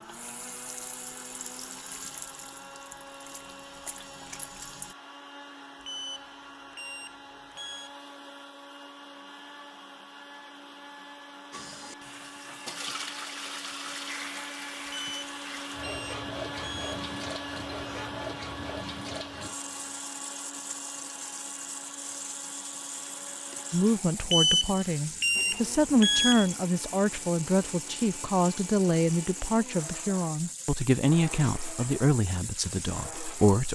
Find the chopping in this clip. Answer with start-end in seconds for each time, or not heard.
not heard.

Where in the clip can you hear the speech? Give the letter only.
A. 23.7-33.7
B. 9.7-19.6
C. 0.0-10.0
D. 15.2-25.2
A.